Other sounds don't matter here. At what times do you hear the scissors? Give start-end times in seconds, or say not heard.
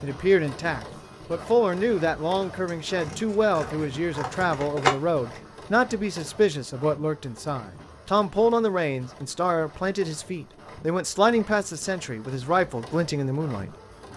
2.6-5.4.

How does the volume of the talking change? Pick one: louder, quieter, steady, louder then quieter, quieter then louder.
steady.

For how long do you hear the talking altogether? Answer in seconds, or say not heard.
14 s.